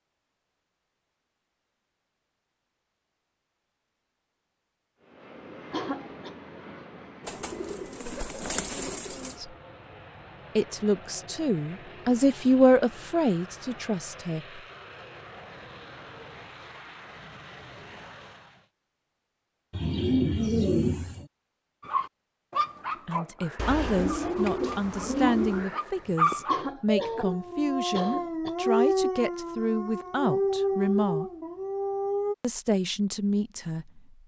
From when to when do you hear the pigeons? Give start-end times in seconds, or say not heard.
7.2-9.3, 19.7-21.2, 23.6-25.7.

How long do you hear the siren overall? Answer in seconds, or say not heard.
not heard.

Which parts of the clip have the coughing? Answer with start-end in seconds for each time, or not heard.
5.7-6.3, 26.4-28.6.